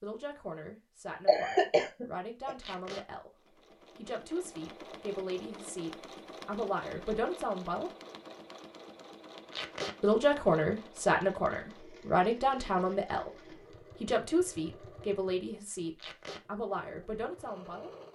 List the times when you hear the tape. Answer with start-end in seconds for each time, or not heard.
2.6-3.0, 9.5-9.9, 15.9-16.4.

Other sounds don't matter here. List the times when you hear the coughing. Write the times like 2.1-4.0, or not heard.
1.2-2.5.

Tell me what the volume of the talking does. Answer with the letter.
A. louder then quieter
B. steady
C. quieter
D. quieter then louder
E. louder
A.